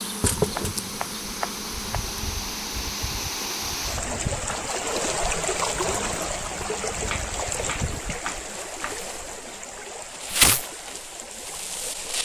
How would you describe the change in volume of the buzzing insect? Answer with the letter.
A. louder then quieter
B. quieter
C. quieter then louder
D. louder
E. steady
C.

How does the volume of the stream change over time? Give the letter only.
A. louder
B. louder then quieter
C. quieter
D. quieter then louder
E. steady
B.